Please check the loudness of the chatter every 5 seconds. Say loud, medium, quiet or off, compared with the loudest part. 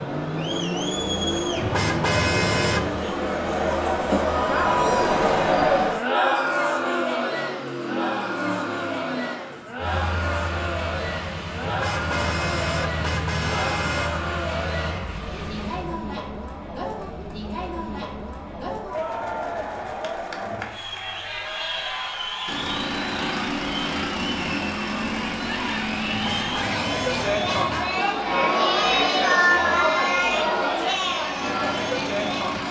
loud, loud, medium, medium, medium, loud, loud.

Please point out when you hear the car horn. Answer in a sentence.
You can hear the car horn from 1.6 to 3.0 s, from 11.6 to 14.1 s and from 26.1 to 27.9 s.